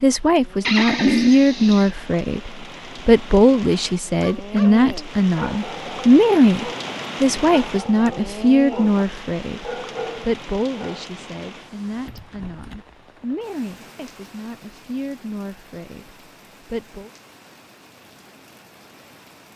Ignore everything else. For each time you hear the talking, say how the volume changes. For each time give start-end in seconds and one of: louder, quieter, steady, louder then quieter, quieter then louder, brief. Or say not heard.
0.0-17.1 quieter.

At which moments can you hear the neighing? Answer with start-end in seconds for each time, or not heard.
0.7-1.9.